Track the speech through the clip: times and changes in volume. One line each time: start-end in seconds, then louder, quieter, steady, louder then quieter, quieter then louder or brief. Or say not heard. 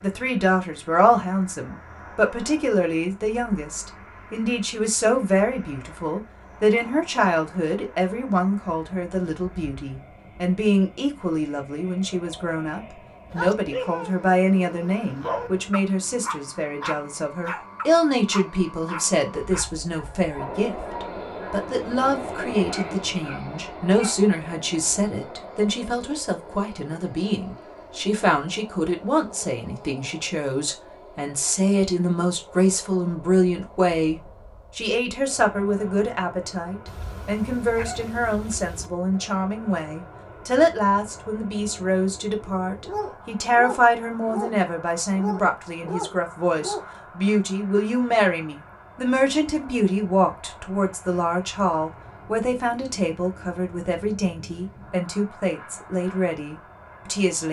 0.0-57.4 steady.